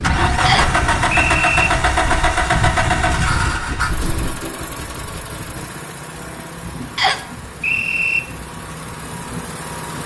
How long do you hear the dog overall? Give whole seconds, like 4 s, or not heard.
not heard.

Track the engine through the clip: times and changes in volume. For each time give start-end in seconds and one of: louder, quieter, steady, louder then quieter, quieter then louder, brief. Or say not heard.
0.0-10.0 quieter.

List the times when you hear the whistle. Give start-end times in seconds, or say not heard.
0.5-1.7, 7.0-8.2.